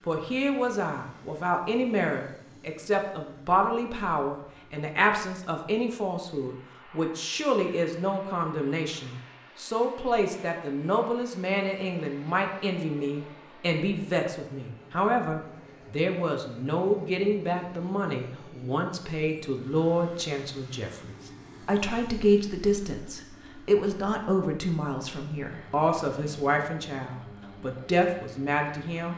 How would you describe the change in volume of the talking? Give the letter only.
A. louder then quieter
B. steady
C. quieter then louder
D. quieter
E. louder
B.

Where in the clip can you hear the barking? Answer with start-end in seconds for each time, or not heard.
not heard.